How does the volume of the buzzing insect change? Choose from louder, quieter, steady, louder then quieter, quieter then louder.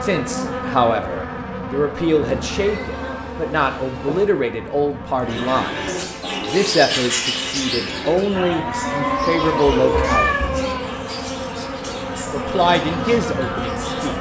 quieter then louder.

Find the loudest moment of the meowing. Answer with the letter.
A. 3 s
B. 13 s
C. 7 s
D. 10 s
D.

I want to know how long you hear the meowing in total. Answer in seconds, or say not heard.
4 s.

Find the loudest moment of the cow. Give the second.
9 s.